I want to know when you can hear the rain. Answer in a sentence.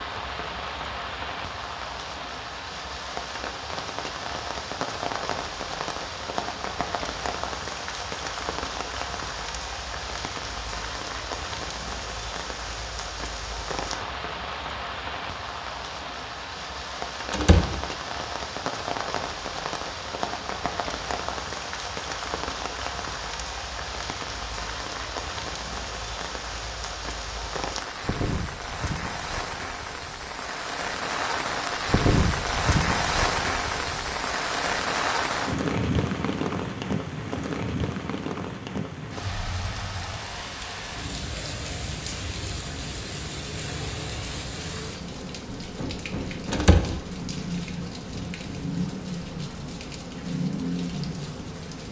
The rain can be heard from 0.0 to 51.8 s.